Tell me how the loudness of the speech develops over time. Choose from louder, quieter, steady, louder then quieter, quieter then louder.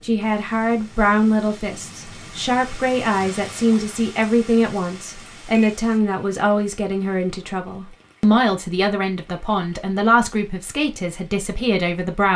steady.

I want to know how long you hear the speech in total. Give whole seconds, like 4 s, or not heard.
12 s.